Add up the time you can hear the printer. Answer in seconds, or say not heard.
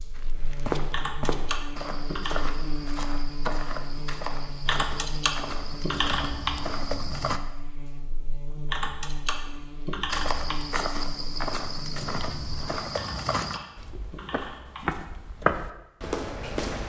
not heard.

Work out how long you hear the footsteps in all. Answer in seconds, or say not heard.
14 s.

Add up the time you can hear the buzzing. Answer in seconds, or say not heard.
13 s.